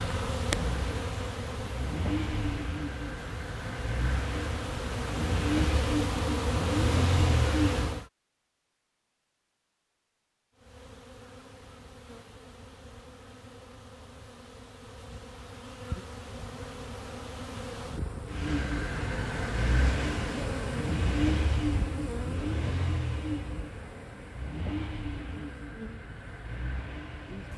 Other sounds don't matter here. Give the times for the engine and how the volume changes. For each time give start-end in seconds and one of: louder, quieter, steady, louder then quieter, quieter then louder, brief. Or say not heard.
0.2-8.0 louder
18.2-27.5 quieter.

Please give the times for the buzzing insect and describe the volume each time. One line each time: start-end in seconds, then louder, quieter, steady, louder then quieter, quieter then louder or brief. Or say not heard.
0.0-8.1 quieter then louder
10.6-27.5 louder then quieter.